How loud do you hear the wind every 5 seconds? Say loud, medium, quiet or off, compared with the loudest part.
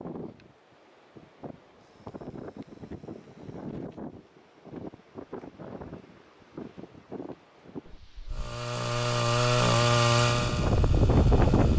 quiet, quiet, loud.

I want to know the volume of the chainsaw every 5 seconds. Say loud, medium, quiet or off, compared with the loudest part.
off, loud, loud.